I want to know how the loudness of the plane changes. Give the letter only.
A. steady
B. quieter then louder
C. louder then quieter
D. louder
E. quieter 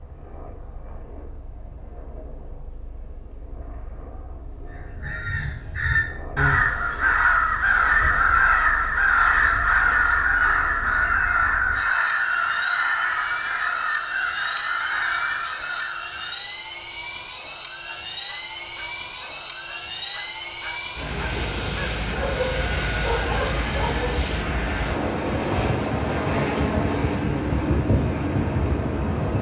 D.